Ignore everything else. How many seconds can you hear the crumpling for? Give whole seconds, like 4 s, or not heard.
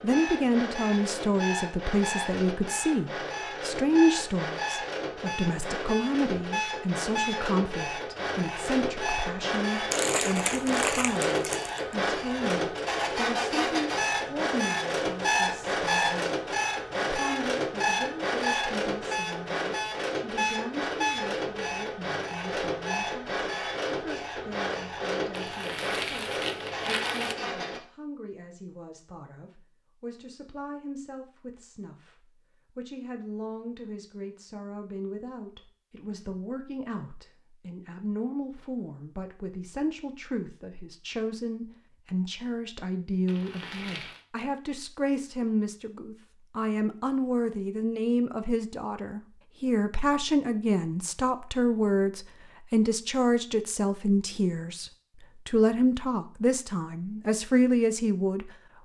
5 s.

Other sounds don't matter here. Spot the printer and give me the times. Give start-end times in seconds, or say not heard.
0.0-27.8.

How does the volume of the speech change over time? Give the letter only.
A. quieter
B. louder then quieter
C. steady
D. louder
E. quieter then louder
E.